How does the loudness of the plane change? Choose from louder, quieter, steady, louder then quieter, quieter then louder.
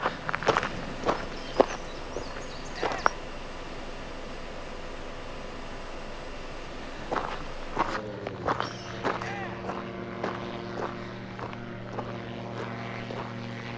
steady.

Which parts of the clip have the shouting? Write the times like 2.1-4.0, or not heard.
2.7-3.2, 9.2-9.7.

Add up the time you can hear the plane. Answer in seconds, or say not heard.
14 s.